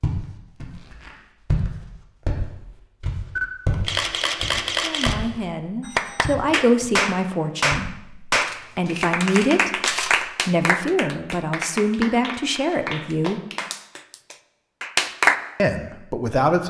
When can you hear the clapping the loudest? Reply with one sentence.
The loudest moment of the clapping is at 15 seconds.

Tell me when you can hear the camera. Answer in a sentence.
You can hear the camera from 3.4 to 5.2 s and from 8.4 to 10.2 s.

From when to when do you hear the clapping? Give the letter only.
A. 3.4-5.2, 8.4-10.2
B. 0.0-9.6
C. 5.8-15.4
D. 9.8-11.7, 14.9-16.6
C.